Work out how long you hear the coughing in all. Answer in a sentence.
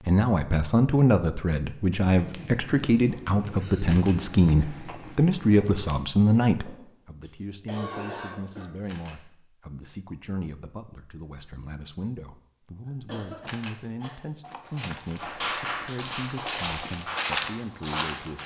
The coughing can be heard for 4 seconds in total.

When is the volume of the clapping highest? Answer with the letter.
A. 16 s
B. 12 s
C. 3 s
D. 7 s
A.